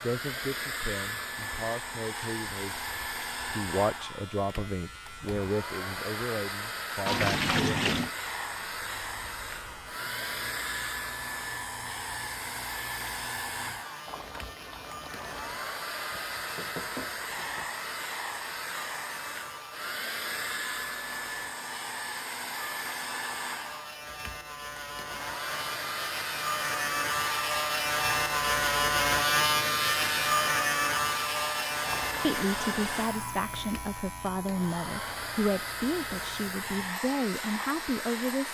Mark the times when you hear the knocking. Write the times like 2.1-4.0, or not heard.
16.1-17.7.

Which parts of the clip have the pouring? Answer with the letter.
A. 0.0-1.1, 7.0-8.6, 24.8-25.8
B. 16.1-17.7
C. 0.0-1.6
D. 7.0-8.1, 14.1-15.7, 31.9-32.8
D.